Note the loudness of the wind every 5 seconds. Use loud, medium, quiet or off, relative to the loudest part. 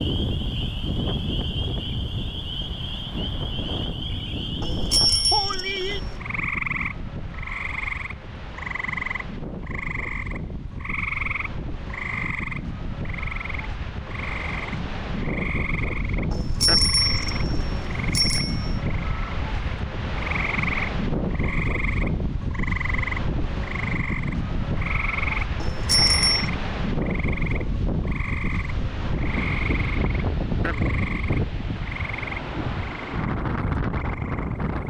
loud, medium, medium, loud, loud, loud, loud.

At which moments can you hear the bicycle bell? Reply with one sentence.
You can hear the bicycle bell from 4.6 to 6.2 s, from 16.3 to 18.8 s and from 25.6 to 26.5 s.